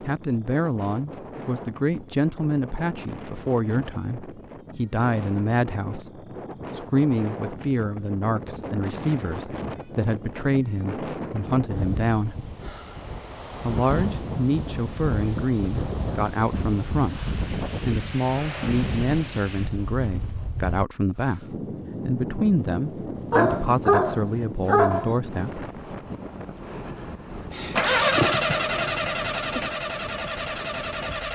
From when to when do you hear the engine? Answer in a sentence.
You can hear the engine from 27.5 to 31.3 s.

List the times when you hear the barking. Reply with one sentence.
You can hear the barking from 23.3 to 25.1 s.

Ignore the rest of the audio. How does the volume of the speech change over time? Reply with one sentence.
The loudness of the speech stays about the same.